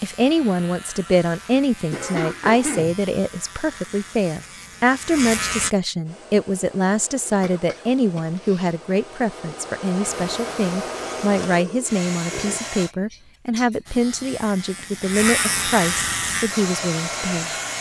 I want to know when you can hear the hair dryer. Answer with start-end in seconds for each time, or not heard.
6.0-12.9, 16.3-17.7.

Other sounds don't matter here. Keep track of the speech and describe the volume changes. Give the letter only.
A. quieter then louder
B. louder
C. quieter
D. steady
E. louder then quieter
D.